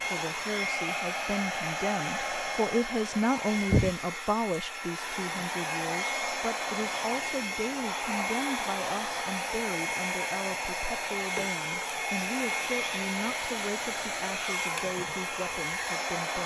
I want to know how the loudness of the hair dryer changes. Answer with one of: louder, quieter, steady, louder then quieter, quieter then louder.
steady.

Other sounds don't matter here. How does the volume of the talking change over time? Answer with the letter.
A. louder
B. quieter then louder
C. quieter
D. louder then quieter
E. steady
C.